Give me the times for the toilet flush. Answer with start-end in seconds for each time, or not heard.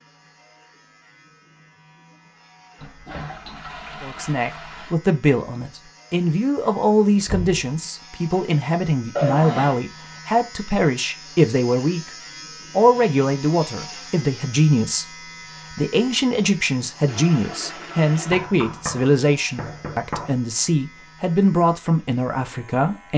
2.8-5.0, 9.2-9.8, 17.1-18.5.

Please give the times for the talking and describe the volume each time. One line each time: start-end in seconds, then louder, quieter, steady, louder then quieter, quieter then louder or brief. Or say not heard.
4.0-23.1 steady.